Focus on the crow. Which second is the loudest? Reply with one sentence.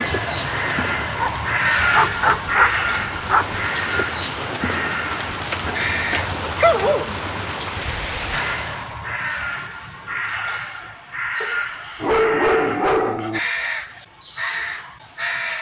The loudest moment of the crow is at 2 seconds.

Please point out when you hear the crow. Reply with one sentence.
The crow can be heard from 0.0 to 6.3 s and from 8.3 to 15.5 s.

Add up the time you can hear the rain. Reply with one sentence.
The rain can be heard for 9 seconds in total.